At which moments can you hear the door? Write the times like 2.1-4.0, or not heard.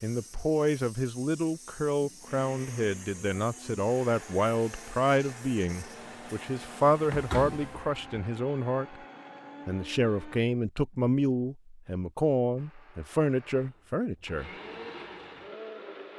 7.1-8.2.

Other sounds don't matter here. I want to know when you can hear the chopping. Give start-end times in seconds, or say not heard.
not heard.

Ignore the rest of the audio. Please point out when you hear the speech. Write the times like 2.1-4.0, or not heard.
0.0-8.9, 9.7-14.5.